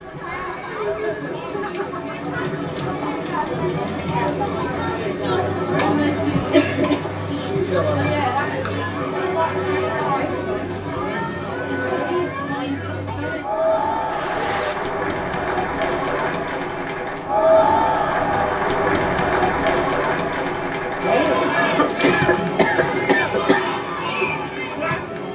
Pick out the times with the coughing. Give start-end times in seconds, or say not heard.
21.6-23.6.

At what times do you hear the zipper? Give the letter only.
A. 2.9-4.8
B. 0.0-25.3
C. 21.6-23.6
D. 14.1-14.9
D.